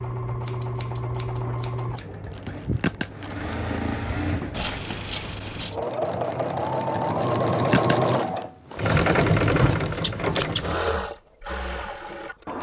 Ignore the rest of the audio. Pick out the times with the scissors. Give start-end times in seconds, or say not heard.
0.5-2.0, 4.5-5.8, 9.6-10.7.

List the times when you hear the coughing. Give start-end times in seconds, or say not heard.
not heard.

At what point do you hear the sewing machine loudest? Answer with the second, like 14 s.
9 s.